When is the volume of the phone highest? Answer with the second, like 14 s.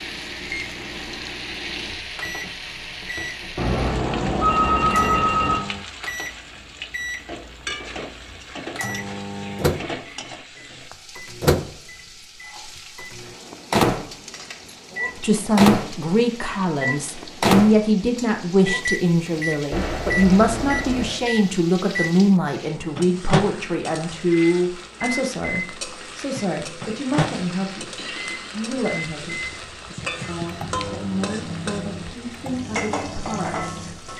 5 s.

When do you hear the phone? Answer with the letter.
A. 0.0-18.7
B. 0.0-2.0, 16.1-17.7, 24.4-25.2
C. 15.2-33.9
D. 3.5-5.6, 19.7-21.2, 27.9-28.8
D.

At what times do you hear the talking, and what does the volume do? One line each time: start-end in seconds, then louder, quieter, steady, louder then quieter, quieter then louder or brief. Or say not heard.
15.2-33.9 quieter.